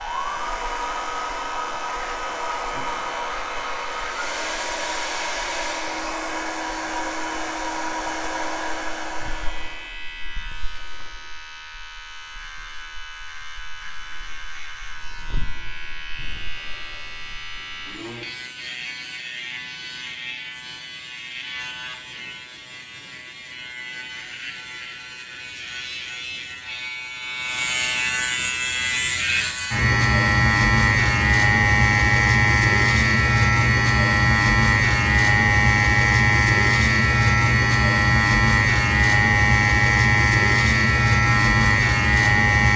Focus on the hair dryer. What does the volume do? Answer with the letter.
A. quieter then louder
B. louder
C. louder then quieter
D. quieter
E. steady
E.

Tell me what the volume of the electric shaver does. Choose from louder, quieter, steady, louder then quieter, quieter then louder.
louder.